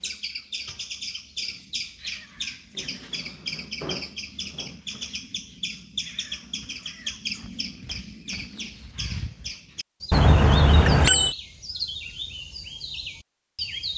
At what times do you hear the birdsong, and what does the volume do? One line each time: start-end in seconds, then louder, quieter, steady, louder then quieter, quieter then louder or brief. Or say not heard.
0.0-13.9 steady.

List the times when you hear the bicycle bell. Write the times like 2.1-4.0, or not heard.
10.1-11.3.